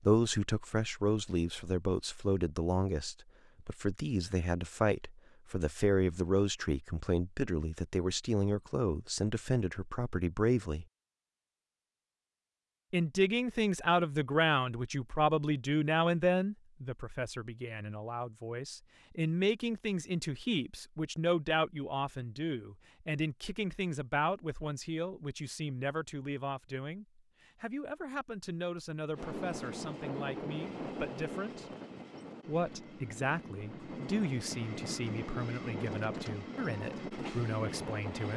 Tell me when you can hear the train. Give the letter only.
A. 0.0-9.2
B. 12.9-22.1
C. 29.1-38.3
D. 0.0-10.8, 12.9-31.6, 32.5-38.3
C.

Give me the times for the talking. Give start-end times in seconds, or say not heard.
0.0-10.8, 12.9-31.6, 32.5-38.3.